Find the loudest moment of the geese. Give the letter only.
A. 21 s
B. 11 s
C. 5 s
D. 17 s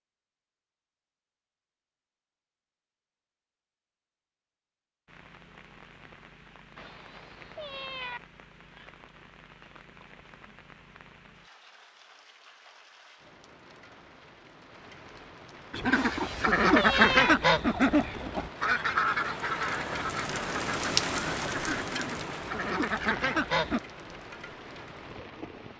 D.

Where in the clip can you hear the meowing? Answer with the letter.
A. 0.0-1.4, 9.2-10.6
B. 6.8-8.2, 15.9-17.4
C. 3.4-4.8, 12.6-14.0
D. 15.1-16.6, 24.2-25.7
B.